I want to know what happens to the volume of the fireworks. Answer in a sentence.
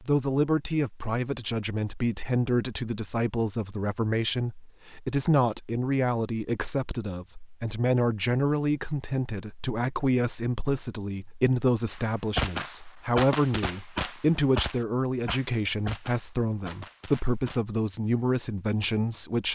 The loudness of the fireworks goes down.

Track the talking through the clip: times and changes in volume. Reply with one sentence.
The talking can be heard from 0.0 to 19.5 s, at a steady volume.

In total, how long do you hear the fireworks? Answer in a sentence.
You can hear the fireworks for 6 seconds altogether.